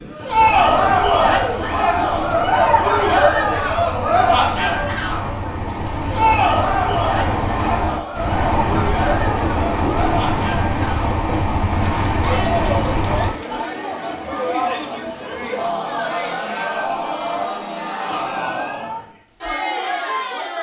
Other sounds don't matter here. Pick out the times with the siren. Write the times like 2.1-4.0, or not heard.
not heard.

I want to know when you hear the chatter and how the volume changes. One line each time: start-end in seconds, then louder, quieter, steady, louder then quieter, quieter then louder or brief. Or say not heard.
0.1-20.5 quieter.